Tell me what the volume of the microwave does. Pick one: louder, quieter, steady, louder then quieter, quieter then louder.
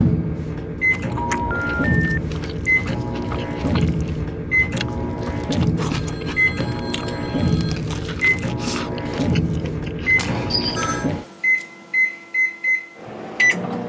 steady.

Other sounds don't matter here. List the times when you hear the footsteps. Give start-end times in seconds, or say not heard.
not heard.